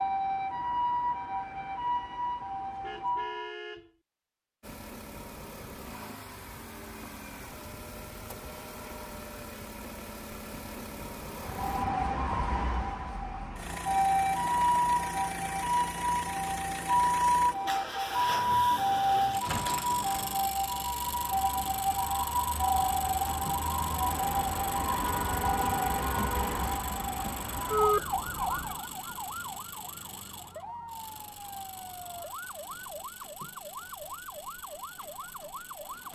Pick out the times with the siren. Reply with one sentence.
The siren can be heard from 0.0 to 3.5 s and from 11.3 to 36.0 s.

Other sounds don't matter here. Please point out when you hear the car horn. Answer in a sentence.
You can hear the car horn from 2.4 to 3.9 s and from 25.0 to 26.6 s.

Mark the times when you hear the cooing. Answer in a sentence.
You can't hear the cooing here.